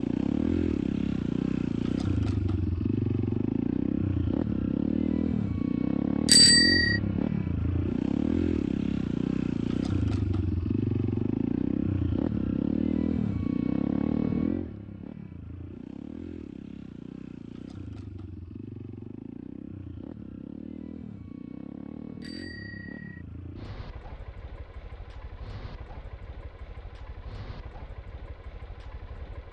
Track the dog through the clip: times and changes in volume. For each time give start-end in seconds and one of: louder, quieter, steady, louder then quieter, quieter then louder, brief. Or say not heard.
not heard.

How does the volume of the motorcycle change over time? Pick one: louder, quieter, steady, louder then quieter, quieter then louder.
quieter.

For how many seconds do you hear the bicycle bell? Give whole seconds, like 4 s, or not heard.
2 s.